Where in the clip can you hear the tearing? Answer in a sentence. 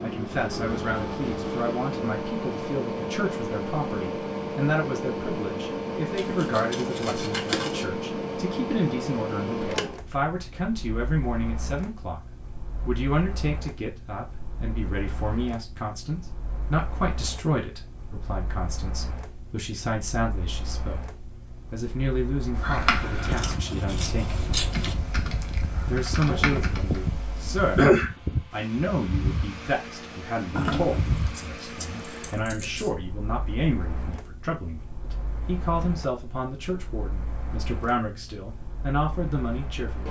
You can't hear the tearing here.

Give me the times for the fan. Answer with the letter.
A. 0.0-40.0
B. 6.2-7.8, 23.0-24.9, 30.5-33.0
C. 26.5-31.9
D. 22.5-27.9
A.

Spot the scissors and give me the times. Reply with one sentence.
The scissors can be heard from 6.2 to 7.8 s, from 23.0 to 24.9 s and from 30.5 to 33.0 s.